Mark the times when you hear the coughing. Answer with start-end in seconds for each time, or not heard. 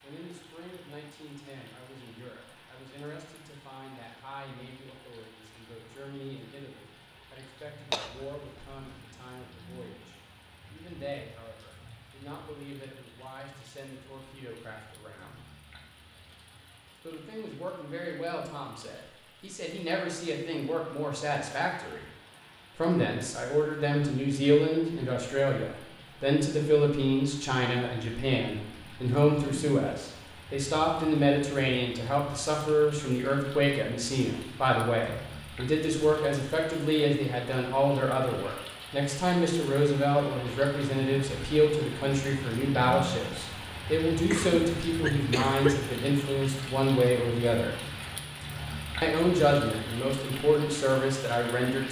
7.9-8.8, 44.3-45.8.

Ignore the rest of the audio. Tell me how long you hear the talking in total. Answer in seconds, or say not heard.
48 s.